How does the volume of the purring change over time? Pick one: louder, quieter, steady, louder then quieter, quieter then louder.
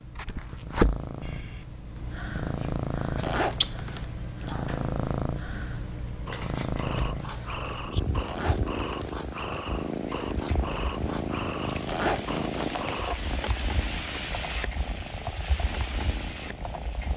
quieter.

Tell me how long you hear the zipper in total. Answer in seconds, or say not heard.
3 s.